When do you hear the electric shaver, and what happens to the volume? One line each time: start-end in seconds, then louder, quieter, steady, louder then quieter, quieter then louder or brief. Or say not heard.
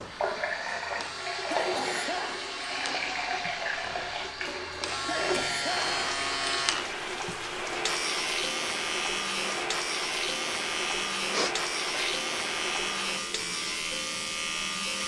0.0-15.0 louder.